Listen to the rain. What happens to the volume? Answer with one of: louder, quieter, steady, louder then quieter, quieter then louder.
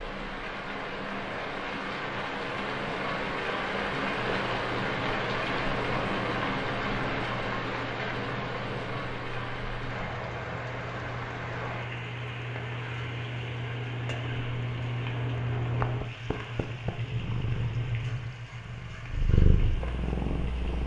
quieter.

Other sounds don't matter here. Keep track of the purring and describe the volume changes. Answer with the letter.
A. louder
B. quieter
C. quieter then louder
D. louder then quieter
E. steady
A.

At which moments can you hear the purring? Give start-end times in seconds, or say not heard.
4.2-20.8.